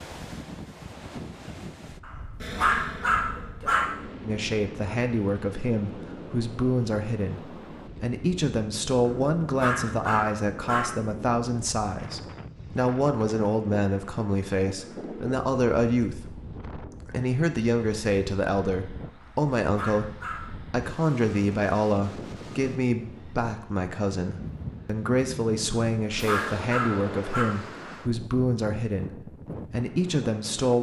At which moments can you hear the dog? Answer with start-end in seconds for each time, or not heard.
2.0-3.9, 9.1-10.9, 19.2-20.6, 25.7-27.4.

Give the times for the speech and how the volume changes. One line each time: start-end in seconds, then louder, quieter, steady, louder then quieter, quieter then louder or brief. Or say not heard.
4.2-30.7 steady.